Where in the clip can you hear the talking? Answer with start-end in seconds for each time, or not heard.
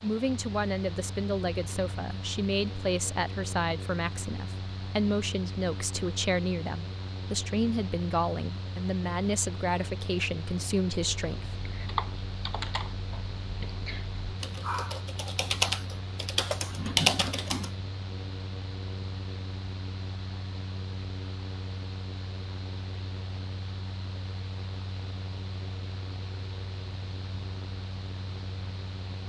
0.0-11.4.